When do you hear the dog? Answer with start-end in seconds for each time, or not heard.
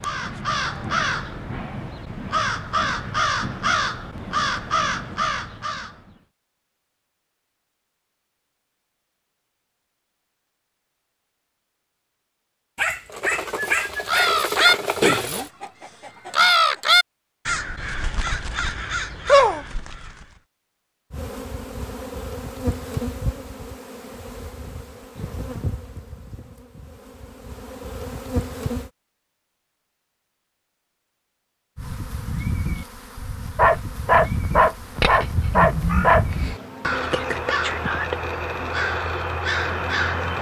12.8-15.5, 33.5-36.2.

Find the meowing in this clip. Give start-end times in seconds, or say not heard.
not heard.